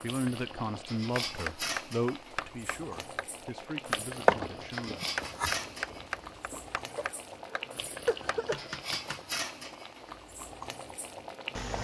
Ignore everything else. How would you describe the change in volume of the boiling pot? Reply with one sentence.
The volume of the boiling pot stays about the same.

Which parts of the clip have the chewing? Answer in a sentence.
The chewing can be heard from 4.0 to 6.6 s.